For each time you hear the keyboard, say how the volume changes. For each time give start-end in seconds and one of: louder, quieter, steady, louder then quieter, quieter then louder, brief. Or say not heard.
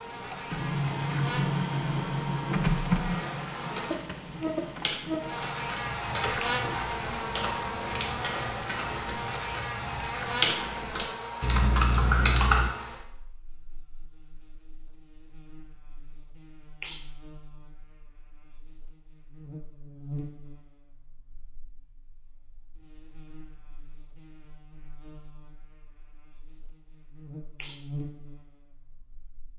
3.6-12.7 louder.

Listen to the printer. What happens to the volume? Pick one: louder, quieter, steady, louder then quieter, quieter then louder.
quieter.